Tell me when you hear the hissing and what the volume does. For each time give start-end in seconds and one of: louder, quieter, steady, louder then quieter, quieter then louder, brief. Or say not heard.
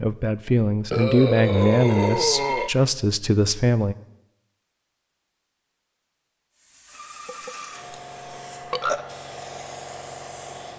6.5-10.7 steady.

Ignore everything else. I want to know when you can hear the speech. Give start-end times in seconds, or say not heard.
0.0-4.0.